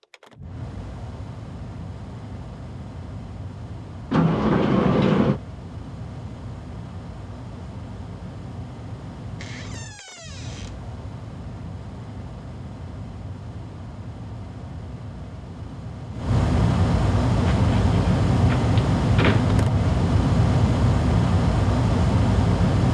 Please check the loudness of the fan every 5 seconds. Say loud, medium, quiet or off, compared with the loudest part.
quiet, quiet, quiet, loud, loud.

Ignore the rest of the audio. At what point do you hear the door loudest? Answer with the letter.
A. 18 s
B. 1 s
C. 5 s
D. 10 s
C.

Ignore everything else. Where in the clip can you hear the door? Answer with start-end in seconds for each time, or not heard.
4.1-5.4, 9.3-10.8, 17.4-19.4.